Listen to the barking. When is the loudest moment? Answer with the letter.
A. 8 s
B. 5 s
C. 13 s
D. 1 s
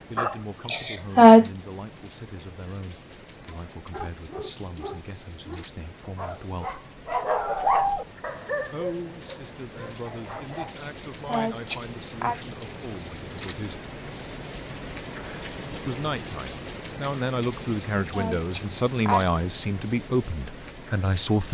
A.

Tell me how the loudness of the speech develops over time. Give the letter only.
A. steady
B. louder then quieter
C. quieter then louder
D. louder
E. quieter
D.